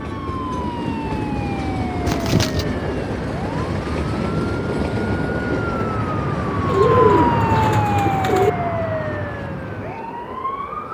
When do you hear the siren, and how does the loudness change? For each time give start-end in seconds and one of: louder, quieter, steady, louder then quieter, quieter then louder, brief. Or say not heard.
0.0-10.9 louder then quieter.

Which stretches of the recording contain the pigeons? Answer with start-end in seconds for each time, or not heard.
2.0-2.6, 6.7-8.5.